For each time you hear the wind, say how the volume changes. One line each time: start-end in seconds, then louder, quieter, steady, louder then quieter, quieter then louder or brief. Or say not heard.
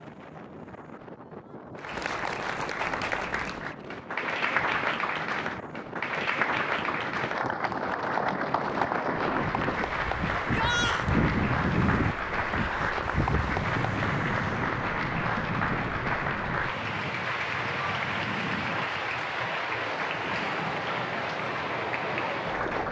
0.0-22.8 louder then quieter.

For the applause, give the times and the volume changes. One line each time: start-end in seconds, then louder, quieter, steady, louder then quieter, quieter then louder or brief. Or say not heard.
1.8-22.8 steady.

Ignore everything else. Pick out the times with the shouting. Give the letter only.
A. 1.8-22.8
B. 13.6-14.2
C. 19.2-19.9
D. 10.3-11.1
D.